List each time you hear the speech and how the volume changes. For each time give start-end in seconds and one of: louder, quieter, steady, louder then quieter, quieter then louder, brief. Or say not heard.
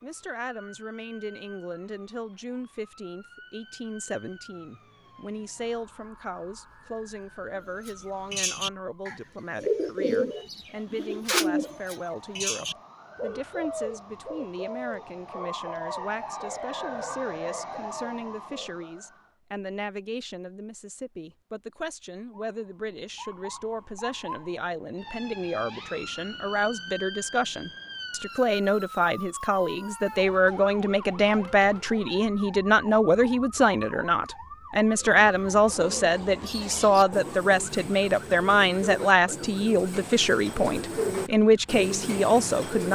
0.0-42.8 louder.